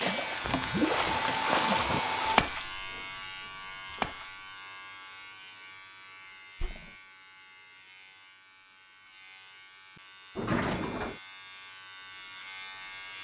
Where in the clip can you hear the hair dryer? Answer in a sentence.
The hair dryer can be heard from 0.0 to 2.5 s.